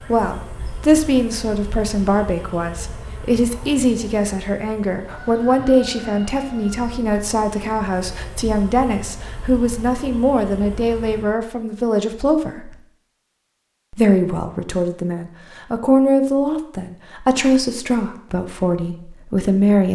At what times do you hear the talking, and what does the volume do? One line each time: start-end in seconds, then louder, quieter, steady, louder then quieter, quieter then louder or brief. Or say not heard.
0.0-12.8 steady
13.9-19.8 louder then quieter.